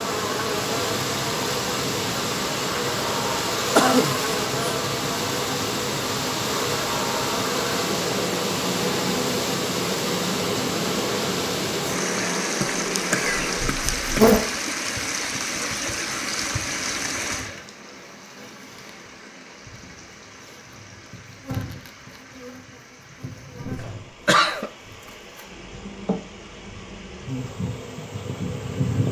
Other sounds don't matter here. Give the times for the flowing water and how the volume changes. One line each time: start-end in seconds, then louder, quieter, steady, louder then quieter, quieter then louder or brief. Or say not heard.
0.0-29.0 quieter.